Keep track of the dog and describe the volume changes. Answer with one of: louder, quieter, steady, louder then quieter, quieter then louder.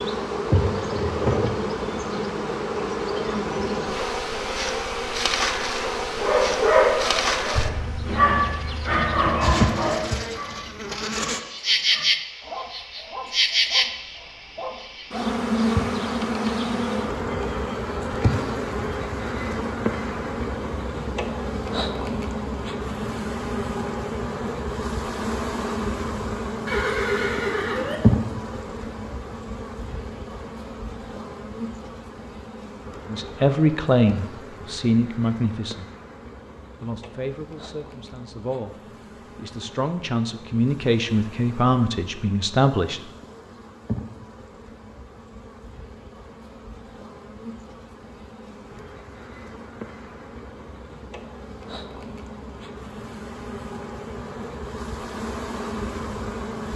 quieter.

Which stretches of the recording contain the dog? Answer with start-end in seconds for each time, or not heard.
6.2-15.2.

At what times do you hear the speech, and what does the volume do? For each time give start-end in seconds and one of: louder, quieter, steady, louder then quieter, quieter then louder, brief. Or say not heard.
33.1-35.9 brief
36.8-43.0 louder.